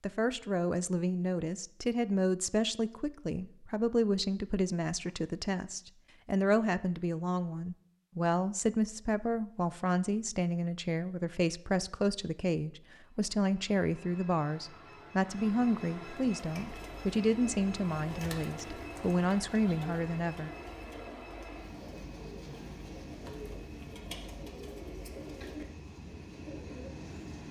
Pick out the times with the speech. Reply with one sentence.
The speech can be heard from 0.0 to 20.5 s.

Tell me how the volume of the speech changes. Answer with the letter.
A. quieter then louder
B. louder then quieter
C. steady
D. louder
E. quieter
C.